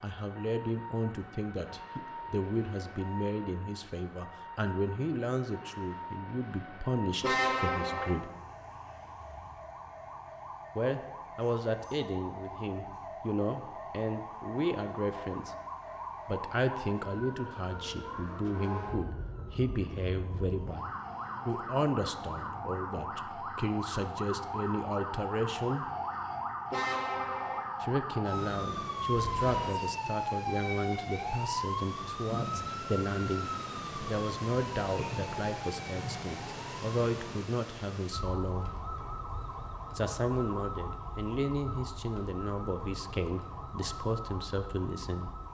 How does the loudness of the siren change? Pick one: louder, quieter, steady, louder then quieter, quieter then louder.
louder then quieter.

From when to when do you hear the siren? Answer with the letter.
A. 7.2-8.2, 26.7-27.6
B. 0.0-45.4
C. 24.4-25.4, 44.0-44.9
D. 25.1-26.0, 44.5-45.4
B.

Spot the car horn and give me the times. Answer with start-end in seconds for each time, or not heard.
7.2-8.2, 26.7-27.6.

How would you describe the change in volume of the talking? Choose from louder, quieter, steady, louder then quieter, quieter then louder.
steady.